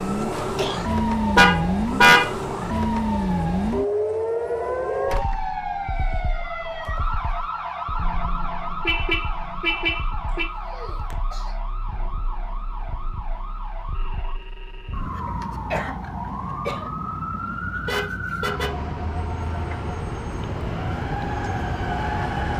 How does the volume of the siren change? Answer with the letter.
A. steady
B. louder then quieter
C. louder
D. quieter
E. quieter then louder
E.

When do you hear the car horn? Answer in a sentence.
The car horn can be heard from 1.4 to 2.8 s, from 8.0 to 10.4 s and from 17.9 to 18.7 s.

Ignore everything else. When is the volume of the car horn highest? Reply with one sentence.
The volume of the car horn peaks at 2 seconds.